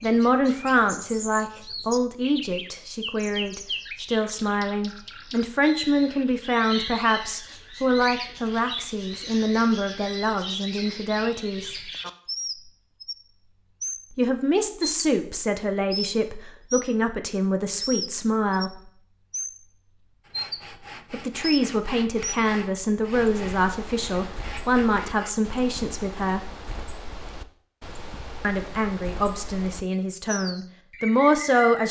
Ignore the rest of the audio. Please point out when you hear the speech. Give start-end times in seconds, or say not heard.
0.0-11.8, 14.2-18.8, 21.1-26.4, 28.4-31.8.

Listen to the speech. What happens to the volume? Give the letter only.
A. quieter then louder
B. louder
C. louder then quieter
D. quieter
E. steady
E.